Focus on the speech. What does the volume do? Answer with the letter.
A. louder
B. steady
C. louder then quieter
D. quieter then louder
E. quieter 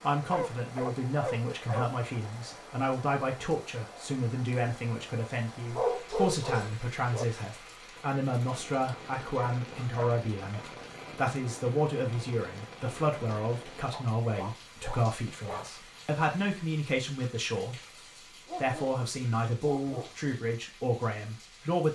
B.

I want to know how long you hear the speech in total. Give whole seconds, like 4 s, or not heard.
21 s.